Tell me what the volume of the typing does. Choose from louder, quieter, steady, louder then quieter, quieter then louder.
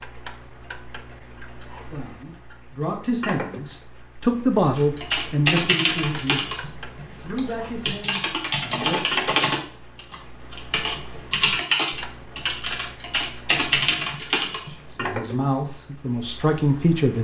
steady.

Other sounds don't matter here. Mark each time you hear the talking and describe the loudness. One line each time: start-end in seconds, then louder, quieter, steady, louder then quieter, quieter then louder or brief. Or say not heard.
1.9-9.0 louder then quieter
14.7-17.1 brief.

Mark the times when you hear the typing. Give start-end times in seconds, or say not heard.
4.8-15.1.